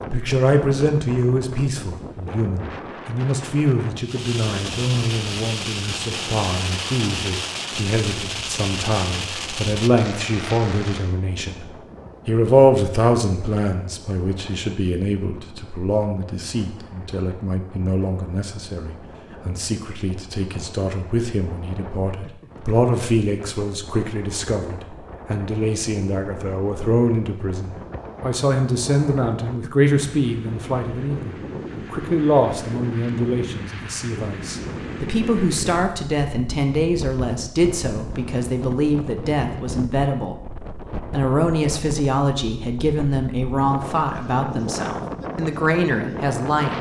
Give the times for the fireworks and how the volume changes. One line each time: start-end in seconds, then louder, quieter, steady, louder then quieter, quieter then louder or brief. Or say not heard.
4.0-11.2 steady.